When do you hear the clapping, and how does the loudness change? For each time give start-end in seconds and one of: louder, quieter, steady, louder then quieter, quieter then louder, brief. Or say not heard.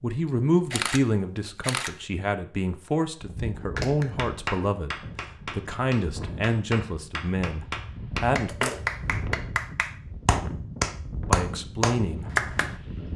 3.8-12.8 louder.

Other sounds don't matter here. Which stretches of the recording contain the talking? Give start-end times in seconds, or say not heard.
0.0-8.7, 11.2-12.3.